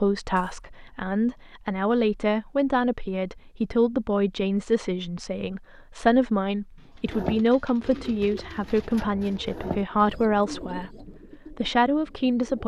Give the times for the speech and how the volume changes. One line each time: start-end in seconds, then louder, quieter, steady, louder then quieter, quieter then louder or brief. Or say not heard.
0.0-12.6 steady.